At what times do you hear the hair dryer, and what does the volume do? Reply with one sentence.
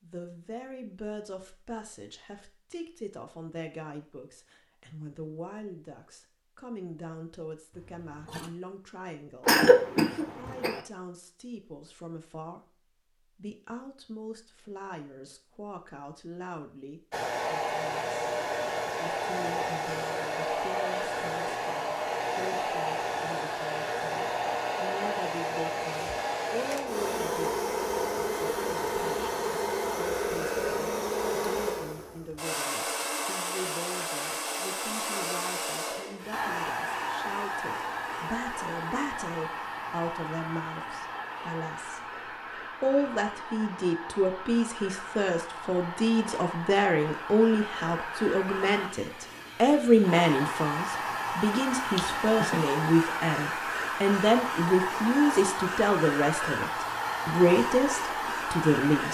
The hair dryer can be heard from 17.1 to 59.0 s, getting quieter then louder.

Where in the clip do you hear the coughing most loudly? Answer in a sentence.
The volume of the coughing peaks at 10 seconds.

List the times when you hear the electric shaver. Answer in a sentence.
The electric shaver can't be heard in this clip.